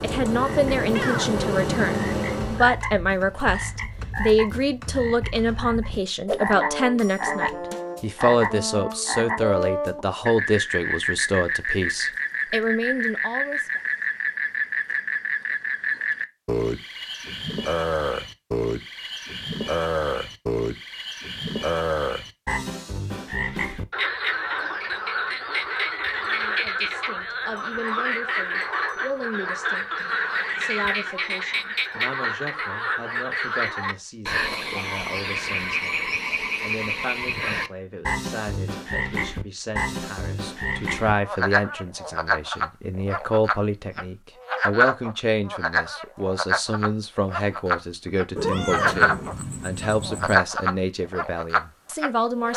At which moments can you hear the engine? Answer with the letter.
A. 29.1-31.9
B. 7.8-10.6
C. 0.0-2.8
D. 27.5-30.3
C.